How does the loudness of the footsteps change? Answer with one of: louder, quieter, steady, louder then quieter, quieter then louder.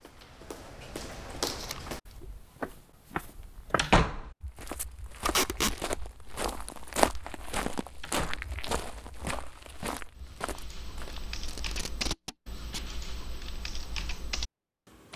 louder then quieter.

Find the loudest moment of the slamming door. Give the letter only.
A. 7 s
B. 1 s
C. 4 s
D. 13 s
C.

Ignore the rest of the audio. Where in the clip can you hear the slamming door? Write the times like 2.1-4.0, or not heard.
3.8-4.3, 8.0-8.6.